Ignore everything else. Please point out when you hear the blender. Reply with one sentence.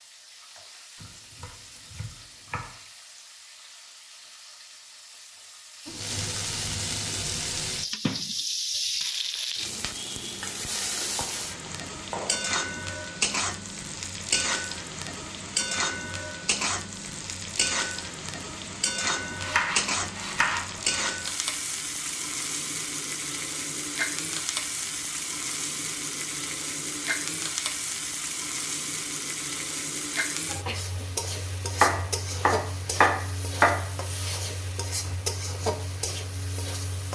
You can't hear the blender here.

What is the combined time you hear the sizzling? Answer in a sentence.
The sizzling can be heard for 37 seconds in total.